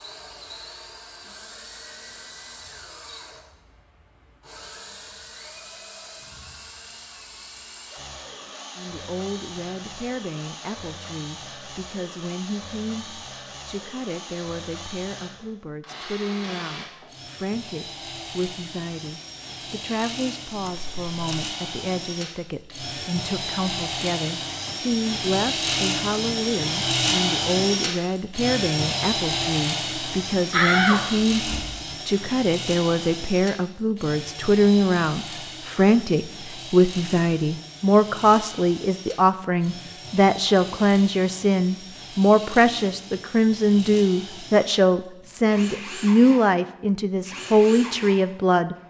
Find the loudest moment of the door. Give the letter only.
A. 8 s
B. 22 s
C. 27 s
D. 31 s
D.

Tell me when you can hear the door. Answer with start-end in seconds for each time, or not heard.
20.6-21.4, 30.5-32.2.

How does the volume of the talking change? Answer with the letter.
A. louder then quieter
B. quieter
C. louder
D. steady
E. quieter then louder
C.